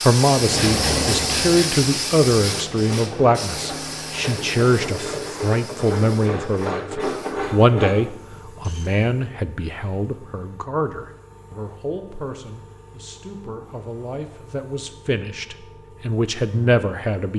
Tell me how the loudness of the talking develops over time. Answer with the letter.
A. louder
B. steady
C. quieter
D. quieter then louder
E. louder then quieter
D.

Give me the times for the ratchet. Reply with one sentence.
You can hear the ratchet from 2.5 to 8.9 s.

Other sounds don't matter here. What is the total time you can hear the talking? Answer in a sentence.
The talking can be heard for 17 seconds in total.